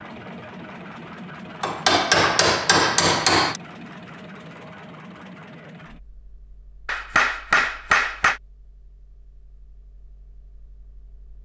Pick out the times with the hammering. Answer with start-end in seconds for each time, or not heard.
1.6-3.6, 6.8-8.4.